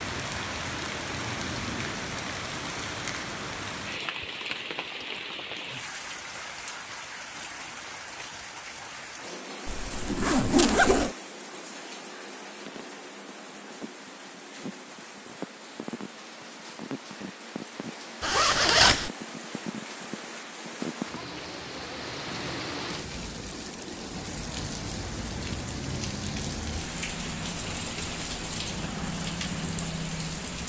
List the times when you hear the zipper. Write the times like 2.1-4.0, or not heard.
9.7-11.2, 18.2-19.1.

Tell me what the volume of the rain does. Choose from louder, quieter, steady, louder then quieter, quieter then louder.
quieter then louder.